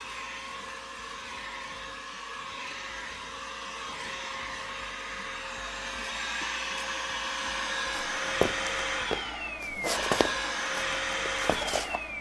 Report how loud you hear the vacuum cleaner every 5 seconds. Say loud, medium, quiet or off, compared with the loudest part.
medium, loud, loud.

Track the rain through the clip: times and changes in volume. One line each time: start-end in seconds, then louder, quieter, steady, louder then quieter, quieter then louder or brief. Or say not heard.
not heard.